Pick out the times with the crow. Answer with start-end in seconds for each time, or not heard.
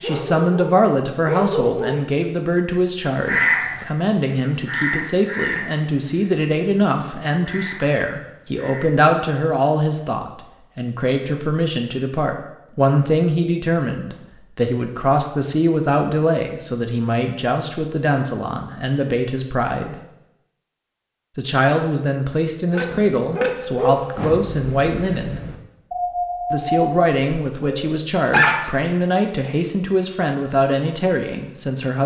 3.1-9.1.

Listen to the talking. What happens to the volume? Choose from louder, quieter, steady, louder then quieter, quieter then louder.
steady.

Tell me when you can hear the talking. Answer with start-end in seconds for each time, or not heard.
0.0-19.9, 21.4-25.4, 26.5-32.0.